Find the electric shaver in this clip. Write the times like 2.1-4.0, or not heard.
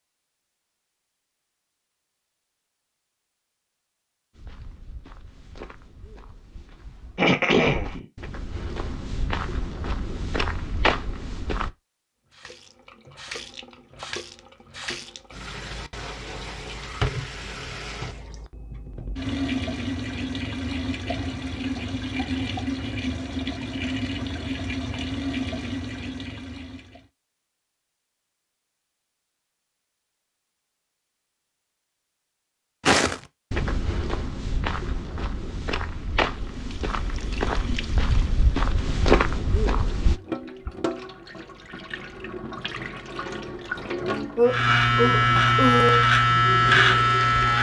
44.5-47.5.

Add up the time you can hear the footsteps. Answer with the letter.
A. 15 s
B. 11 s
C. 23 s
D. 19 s
A.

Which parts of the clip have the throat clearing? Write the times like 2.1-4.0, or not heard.
7.2-8.1, 44.4-46.0.